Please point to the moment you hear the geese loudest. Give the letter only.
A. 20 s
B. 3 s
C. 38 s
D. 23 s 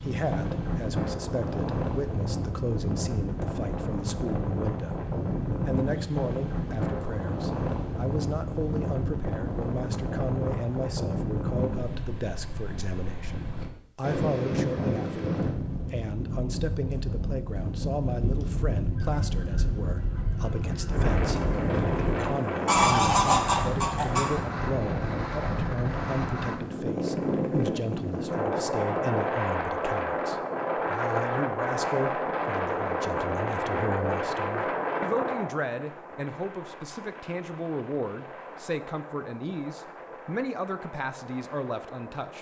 D.